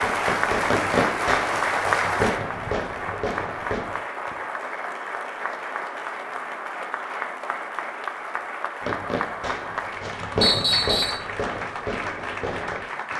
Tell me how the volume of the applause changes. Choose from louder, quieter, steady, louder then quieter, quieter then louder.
quieter.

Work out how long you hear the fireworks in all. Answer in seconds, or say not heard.
8 s.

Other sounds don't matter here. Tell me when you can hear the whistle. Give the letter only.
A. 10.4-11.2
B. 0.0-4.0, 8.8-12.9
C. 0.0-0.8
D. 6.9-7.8
A.